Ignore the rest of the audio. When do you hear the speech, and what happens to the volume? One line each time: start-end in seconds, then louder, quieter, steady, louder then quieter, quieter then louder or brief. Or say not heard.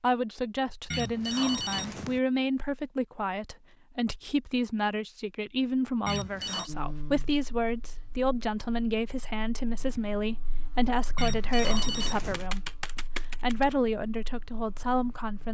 0.0-15.4 steady.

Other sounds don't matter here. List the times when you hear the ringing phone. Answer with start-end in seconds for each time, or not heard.
0.9-2.2, 6.0-6.7, 11.2-12.5.